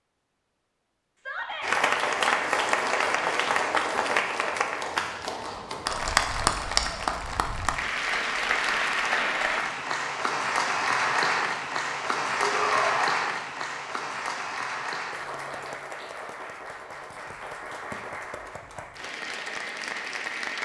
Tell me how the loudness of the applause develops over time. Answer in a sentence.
The volume of the applause goes down.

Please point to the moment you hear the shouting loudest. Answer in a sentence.
The volume of the shouting peaks at 13 seconds.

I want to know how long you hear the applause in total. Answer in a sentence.
You can hear the applause for 19 seconds altogether.